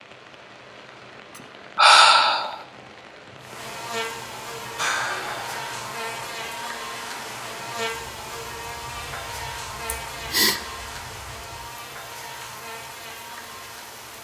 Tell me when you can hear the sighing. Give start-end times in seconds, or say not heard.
1.8-2.5, 4.8-5.8, 9.8-10.6.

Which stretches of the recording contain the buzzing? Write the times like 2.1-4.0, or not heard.
3.4-14.1.